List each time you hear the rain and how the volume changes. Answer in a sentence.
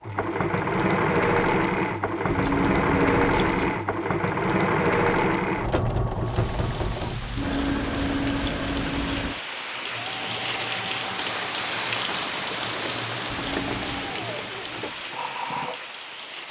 The rain can be heard from 6.2 to 16.4 s, getting louder then quieter.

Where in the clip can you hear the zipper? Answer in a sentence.
You can't hear the zipper here.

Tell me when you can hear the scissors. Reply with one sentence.
The scissors can be heard from 2.3 to 3.8 s, from 7.3 to 9.3 s and from 13.2 to 14.2 s.